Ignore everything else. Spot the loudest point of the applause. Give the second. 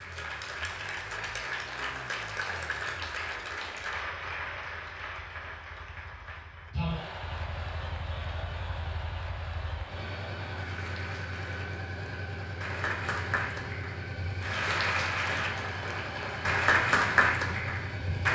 17 s.